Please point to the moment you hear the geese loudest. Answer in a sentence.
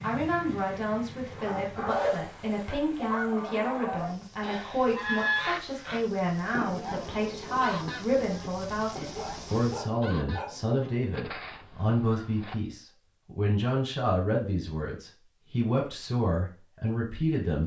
The volume of the geese peaks at 5 seconds.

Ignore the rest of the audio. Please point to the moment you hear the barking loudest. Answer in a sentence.
The loudest moment of the barking is at 2 seconds.